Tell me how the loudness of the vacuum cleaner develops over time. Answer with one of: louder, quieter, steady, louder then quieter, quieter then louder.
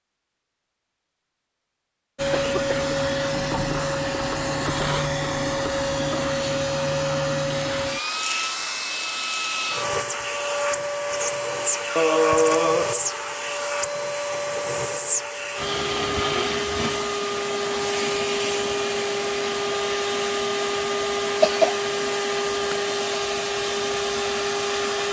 steady.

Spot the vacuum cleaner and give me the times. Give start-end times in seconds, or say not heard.
2.1-25.0.